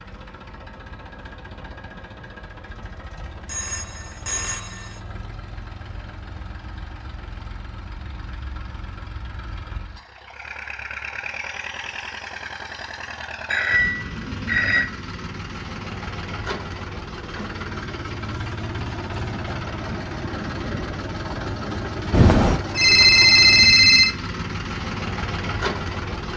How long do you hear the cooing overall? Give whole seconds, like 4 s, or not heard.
not heard.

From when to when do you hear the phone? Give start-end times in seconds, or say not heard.
3.5-5.0, 13.5-14.9, 22.1-24.1.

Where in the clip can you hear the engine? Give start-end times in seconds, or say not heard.
0.0-26.3.